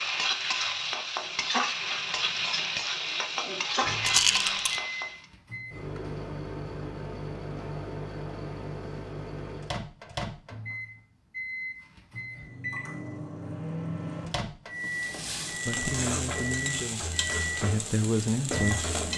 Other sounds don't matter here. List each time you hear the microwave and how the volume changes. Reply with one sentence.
The microwave can be heard from 3.8 to 19.1 s, at a steady volume.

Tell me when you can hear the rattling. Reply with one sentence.
The rattling can be heard from 4.0 to 4.8 s.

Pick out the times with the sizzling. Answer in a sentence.
The sizzling can be heard from 0.0 to 5.2 s and from 14.8 to 19.1 s.